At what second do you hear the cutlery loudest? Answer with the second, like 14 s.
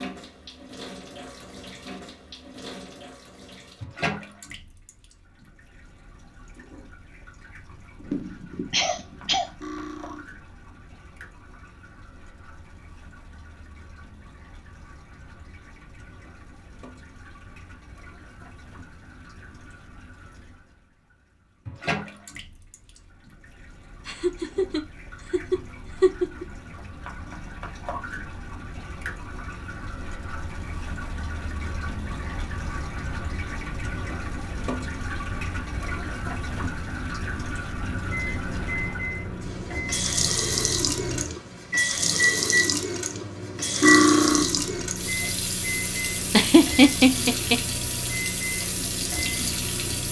44 s.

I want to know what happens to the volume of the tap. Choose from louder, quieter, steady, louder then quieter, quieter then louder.
quieter then louder.